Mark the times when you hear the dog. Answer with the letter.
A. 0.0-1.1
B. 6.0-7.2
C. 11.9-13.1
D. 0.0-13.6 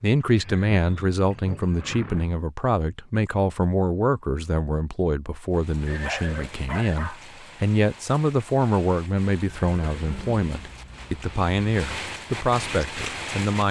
B.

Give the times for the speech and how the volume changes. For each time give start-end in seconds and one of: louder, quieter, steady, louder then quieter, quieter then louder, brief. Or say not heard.
0.0-13.6 steady.